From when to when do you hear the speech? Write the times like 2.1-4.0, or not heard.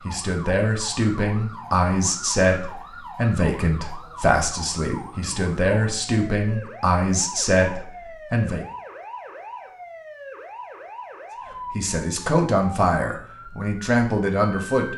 0.1-8.7, 11.7-14.9.